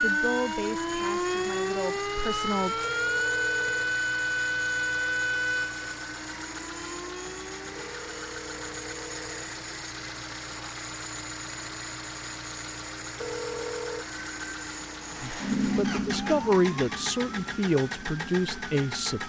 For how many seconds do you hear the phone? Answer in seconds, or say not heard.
4 s.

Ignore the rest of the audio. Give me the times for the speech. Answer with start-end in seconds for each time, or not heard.
0.0-2.9, 15.2-19.2.